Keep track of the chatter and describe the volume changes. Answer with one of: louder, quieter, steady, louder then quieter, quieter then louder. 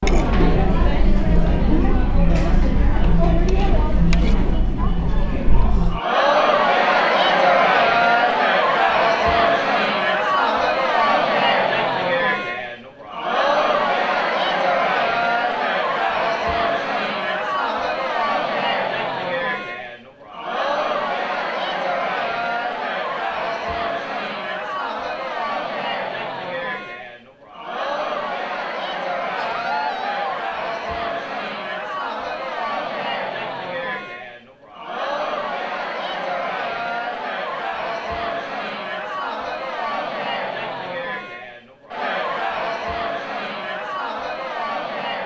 quieter.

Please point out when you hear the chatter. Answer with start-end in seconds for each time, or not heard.
0.0-45.2.